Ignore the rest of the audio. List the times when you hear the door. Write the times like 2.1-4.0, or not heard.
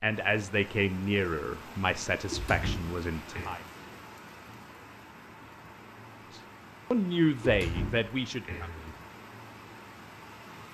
2.3-3.5, 7.4-8.9.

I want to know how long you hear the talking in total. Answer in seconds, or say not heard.
6 s.